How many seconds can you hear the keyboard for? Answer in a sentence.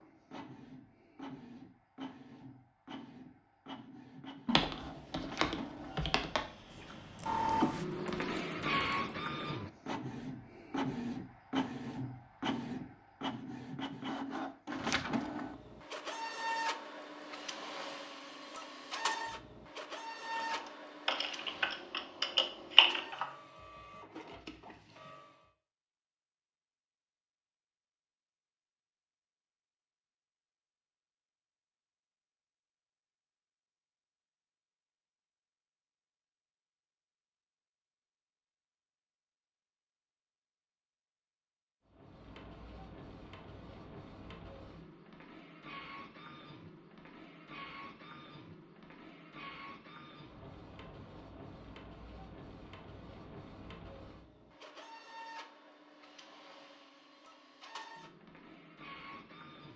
The keyboard can be heard for 8 seconds in total.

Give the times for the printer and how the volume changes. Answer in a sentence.
You can hear the printer from 0.0 to 25.5 s, getting louder then quieter; and from 41.9 to 59.7 s, at a steady volume.